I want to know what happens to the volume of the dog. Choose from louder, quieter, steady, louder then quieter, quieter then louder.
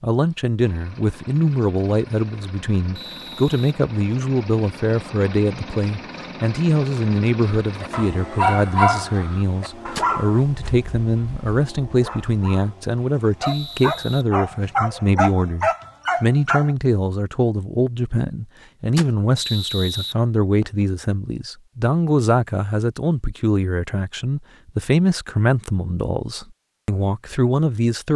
quieter then louder.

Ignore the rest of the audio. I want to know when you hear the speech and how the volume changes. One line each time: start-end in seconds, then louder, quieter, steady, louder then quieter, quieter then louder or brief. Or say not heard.
0.0-28.1 steady.